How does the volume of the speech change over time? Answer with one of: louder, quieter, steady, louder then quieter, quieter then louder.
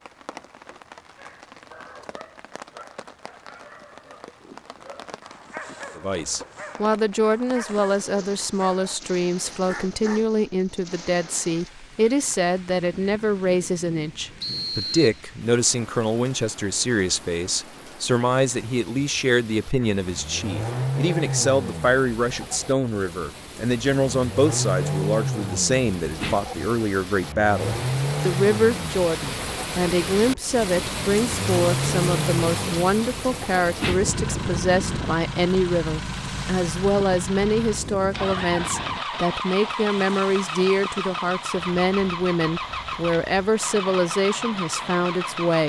steady.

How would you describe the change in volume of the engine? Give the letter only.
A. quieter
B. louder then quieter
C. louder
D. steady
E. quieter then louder
D.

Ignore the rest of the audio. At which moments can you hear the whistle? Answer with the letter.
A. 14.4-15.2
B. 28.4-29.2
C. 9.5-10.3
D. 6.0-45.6
A.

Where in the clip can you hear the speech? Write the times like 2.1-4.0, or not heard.
6.0-45.6.